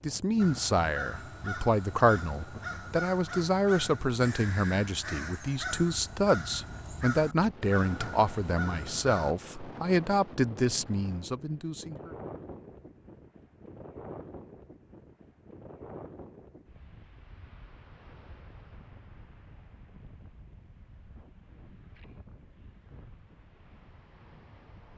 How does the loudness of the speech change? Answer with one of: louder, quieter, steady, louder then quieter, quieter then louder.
steady.